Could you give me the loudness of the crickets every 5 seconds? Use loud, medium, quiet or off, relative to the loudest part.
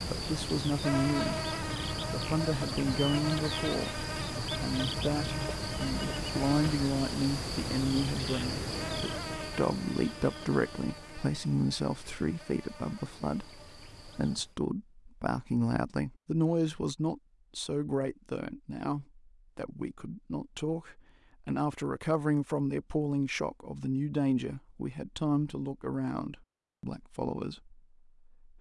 loud, loud, quiet, off, off, off.